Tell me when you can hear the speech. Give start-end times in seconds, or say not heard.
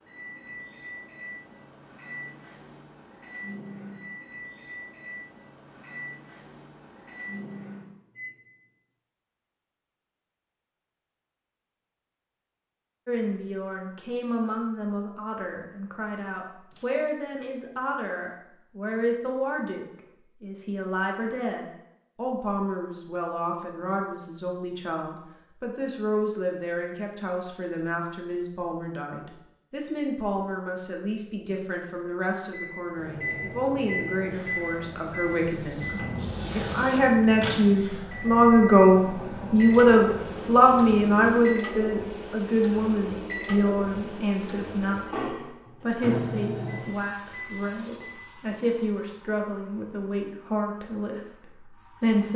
13.1-52.3.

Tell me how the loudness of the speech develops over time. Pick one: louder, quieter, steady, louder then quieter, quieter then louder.
louder then quieter.